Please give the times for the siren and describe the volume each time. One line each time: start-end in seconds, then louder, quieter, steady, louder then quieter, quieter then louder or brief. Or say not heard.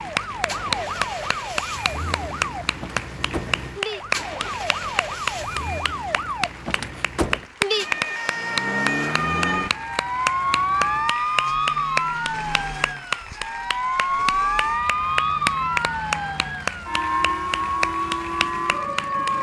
0.0-19.3 louder.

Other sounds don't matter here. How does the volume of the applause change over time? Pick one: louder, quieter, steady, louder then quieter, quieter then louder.
steady.